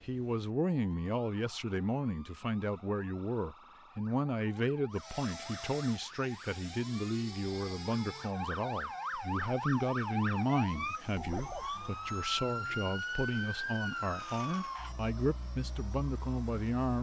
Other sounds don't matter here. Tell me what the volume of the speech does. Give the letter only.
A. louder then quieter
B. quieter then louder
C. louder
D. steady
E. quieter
D.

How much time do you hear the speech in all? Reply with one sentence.
You can hear the speech for 17 seconds altogether.